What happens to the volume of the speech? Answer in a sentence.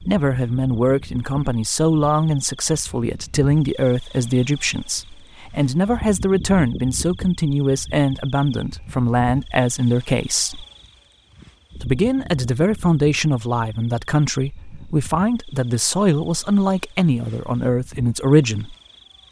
The volume of the speech stays about the same.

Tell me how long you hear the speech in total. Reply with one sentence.
You can hear the speech for 18 seconds altogether.